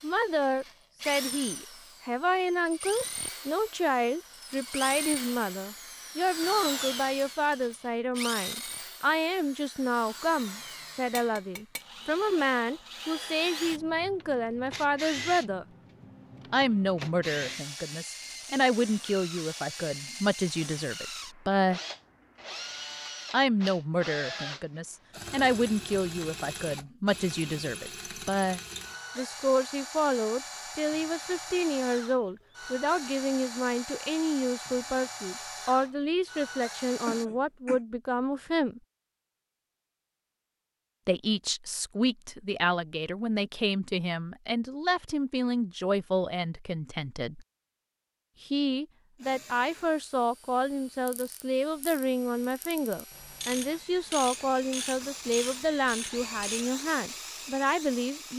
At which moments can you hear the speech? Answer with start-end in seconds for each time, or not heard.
0.0-15.7, 16.5-21.8, 23.3-38.8, 41.0-47.5, 48.4-58.3.